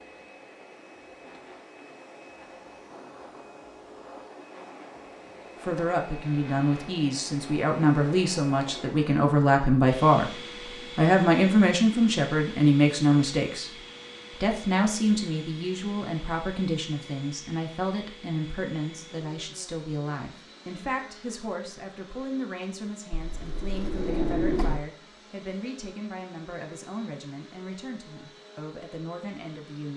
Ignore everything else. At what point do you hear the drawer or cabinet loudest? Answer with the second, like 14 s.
24 s.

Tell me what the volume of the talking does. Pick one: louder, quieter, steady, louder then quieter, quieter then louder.
quieter.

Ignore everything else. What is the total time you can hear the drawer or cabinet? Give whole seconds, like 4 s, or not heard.
2 s.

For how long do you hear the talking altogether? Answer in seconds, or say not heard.
24 s.